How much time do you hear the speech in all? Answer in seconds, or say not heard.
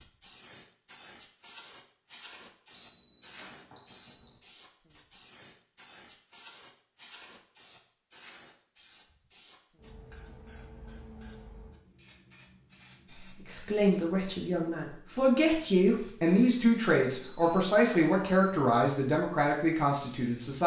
7 s.